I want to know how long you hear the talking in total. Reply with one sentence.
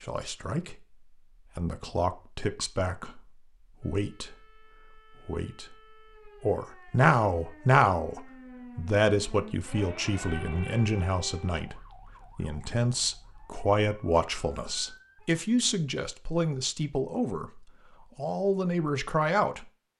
The talking can be heard for 18 seconds in total.